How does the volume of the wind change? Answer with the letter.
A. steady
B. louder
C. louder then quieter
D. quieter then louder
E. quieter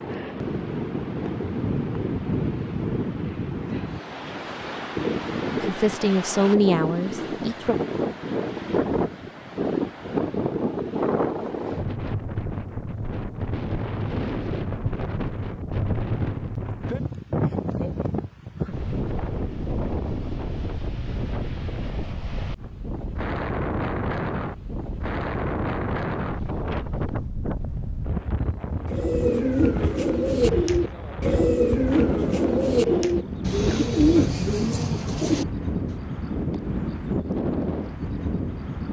A.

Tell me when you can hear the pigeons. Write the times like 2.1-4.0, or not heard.
28.9-36.0.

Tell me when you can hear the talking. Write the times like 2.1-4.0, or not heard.
5.6-7.8.